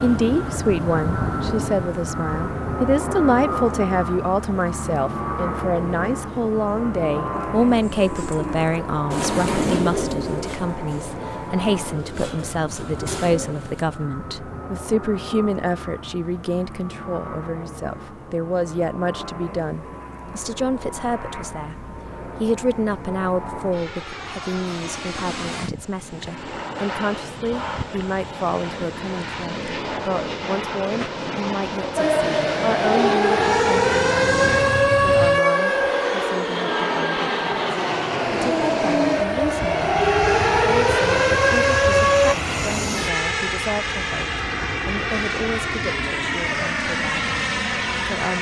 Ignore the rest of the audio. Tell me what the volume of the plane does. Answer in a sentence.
The volume of the plane goes down, then up.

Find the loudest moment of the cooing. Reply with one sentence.
The loudest moment of the cooing is at 10 seconds.